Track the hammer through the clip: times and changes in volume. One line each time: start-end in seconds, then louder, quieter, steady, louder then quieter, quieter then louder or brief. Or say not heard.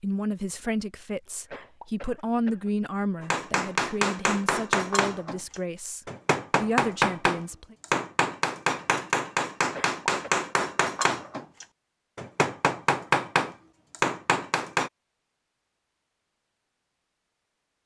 3.2-14.9 steady.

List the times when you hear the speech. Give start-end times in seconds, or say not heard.
0.0-7.8.